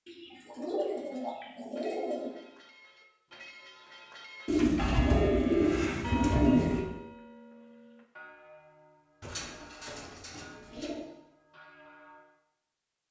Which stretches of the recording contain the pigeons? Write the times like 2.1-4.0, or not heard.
0.1-2.3, 4.5-6.8, 9.2-11.1.